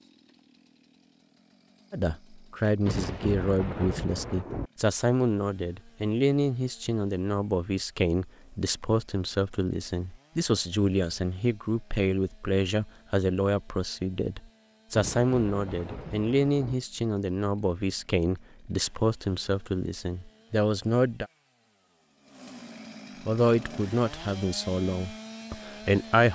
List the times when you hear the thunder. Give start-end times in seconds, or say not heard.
2.9-4.7, 14.9-16.8.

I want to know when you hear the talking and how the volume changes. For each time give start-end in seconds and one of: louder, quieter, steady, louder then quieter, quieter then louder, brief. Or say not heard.
1.9-21.2 steady
23.2-26.2 brief.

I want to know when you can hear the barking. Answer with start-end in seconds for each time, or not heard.
not heard.